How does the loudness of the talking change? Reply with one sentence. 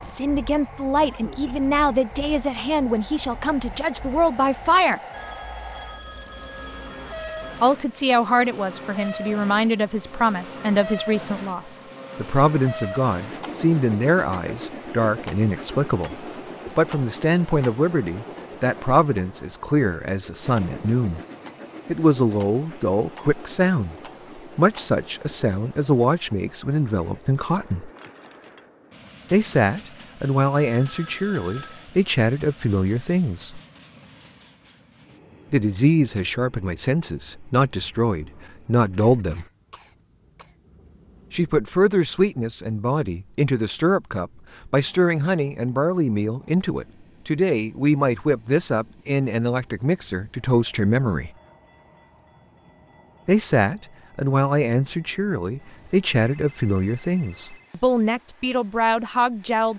The volume of the talking stays about the same.